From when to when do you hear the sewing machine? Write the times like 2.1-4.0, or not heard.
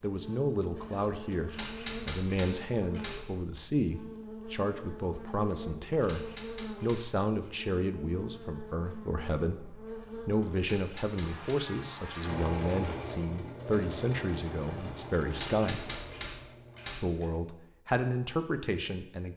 12.2-16.9.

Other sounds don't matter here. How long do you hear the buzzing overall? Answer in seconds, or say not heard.
12 s.